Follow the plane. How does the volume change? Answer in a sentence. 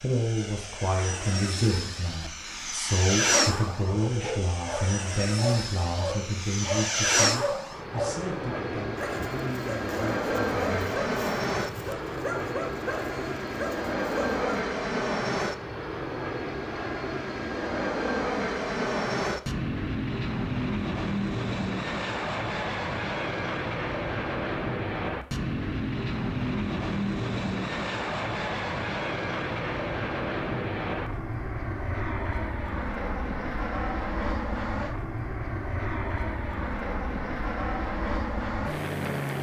The volume of the plane stays about the same.